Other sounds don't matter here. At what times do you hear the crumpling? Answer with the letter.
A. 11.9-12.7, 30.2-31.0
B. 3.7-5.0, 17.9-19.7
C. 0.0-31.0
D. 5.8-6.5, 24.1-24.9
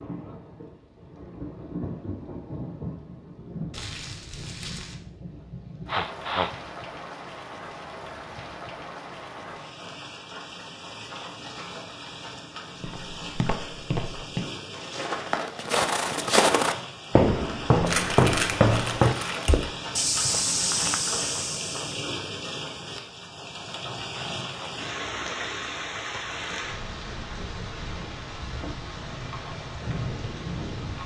B.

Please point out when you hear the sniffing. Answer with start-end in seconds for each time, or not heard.
5.8-6.5, 24.1-24.9.